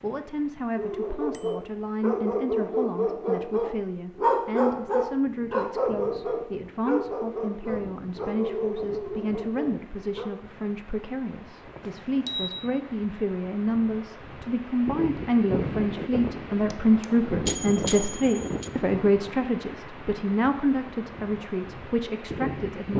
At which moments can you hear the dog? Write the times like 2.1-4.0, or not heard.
0.8-10.3.